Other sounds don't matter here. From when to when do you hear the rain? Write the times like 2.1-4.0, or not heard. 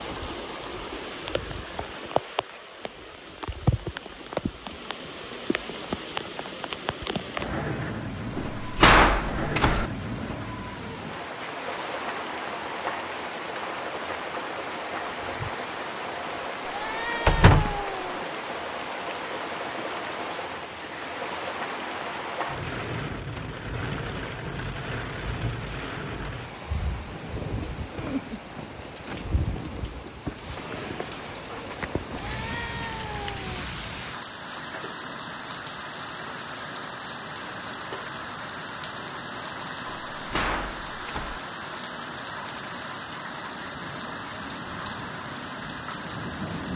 0.0-46.7.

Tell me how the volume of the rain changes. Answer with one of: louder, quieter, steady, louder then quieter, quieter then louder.
steady.